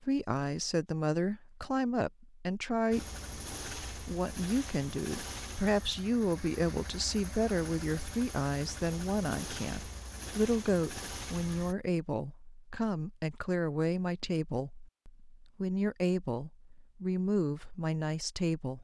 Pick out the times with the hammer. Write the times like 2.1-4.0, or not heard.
not heard.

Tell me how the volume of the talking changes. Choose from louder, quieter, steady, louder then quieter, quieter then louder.
steady.